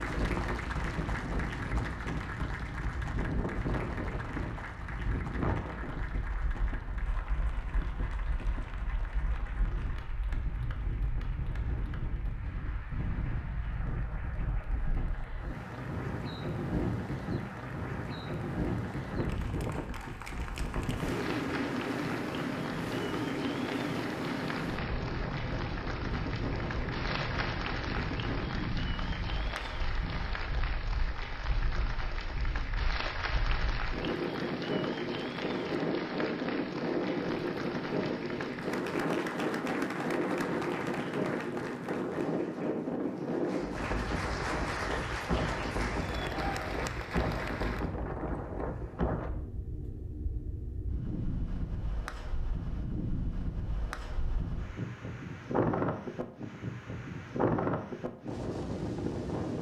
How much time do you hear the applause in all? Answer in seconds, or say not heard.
48 s.